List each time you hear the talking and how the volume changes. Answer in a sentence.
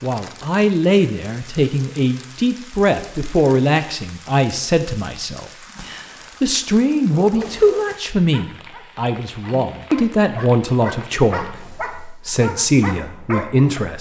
You can hear the talking from 0.0 to 13.9 s, at a steady volume.